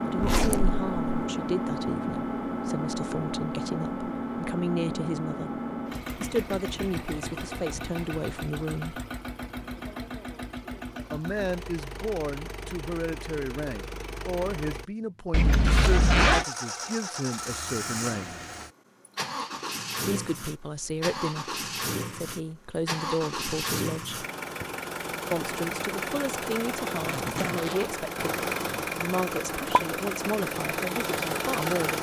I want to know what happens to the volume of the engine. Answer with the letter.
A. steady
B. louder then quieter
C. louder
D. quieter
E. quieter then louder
E.